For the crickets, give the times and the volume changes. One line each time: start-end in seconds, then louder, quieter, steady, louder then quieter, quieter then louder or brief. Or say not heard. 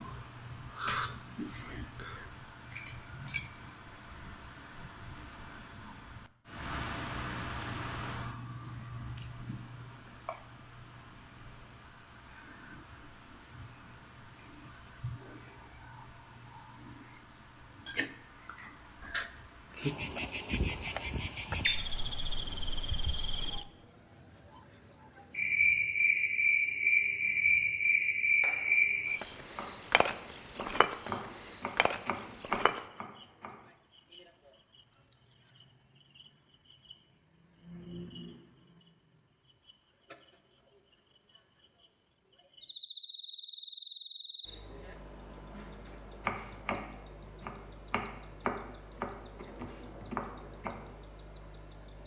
0.0-52.0 quieter.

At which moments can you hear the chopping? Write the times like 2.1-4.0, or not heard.
28.4-33.5, 45.8-51.0.